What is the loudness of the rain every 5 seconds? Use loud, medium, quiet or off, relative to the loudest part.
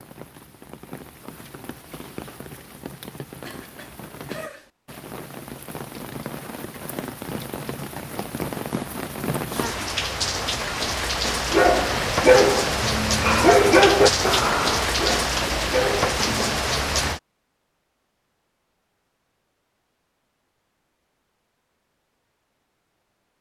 quiet, medium, loud, loud, off.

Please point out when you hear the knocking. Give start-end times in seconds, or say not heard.
not heard.